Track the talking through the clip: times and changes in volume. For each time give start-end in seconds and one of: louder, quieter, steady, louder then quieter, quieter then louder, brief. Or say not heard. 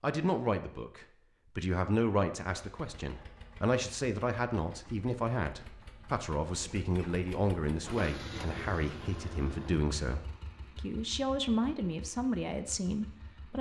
0.0-13.5 steady.